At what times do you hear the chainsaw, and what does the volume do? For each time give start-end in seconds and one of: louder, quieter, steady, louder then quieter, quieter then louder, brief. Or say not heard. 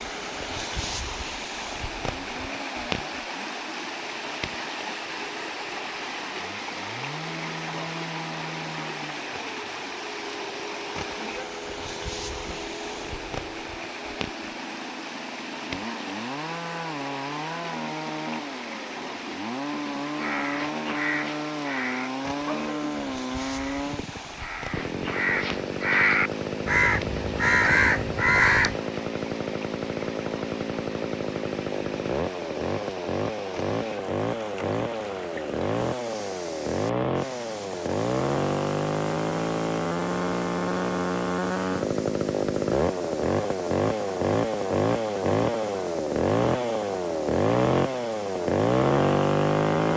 0.0-49.9 louder.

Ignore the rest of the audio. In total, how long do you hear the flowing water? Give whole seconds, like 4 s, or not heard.
50 s.